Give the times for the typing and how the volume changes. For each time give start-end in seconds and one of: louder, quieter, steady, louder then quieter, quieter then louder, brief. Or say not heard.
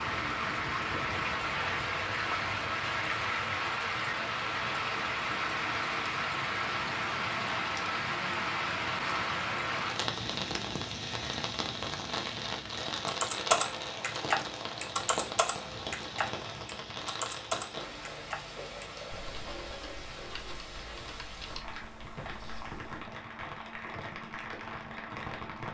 13.1-22.9 quieter.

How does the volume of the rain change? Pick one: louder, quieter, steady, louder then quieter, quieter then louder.
quieter.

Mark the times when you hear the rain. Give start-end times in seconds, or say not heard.
0.0-25.6.